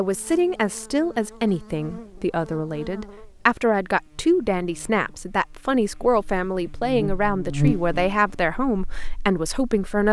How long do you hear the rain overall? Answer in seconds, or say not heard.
not heard.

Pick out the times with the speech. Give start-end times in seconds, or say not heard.
0.0-10.0.